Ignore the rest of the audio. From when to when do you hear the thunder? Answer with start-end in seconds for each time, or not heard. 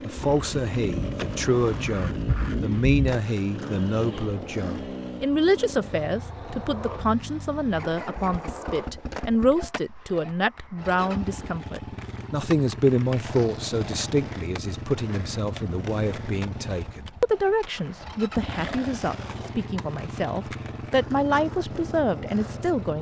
0.1-3.2.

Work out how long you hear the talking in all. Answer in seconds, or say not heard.
23 s.